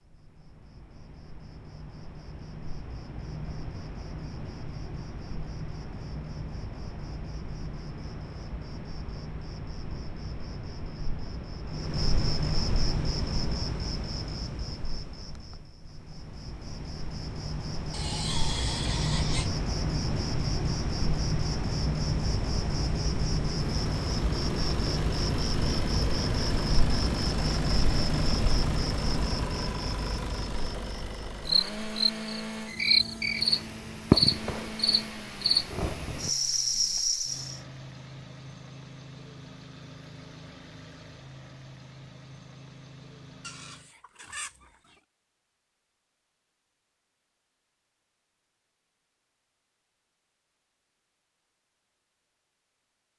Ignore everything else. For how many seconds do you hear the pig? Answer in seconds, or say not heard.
3 s.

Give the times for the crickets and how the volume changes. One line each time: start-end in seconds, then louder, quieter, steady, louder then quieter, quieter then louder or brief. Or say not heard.
0.1-37.6 louder.